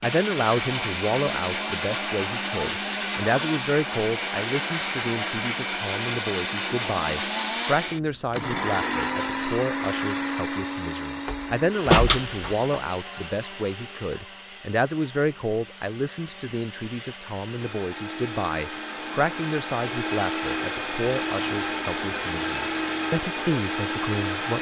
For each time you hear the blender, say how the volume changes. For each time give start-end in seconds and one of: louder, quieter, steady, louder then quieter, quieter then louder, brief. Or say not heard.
0.0-24.5 quieter then louder.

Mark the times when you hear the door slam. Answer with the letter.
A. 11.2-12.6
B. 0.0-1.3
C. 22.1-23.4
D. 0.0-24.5
A.